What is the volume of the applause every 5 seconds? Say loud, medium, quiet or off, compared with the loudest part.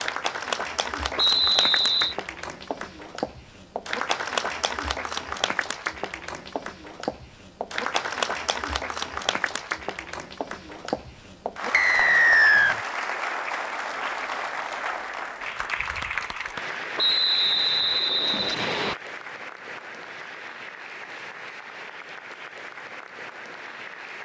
loud, loud, loud, loud, medium.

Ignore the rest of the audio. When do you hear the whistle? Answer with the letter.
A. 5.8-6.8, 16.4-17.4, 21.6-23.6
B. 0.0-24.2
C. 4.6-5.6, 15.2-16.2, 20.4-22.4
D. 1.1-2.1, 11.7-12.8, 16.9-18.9
D.